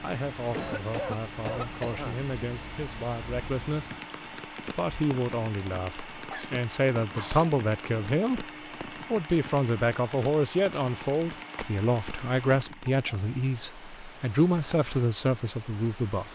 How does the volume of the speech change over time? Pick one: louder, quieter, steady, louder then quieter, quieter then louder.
louder.